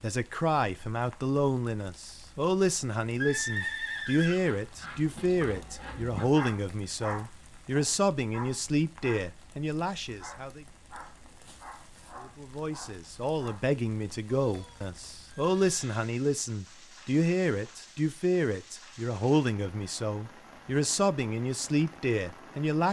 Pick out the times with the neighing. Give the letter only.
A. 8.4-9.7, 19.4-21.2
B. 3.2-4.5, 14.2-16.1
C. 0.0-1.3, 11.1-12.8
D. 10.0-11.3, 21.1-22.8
B.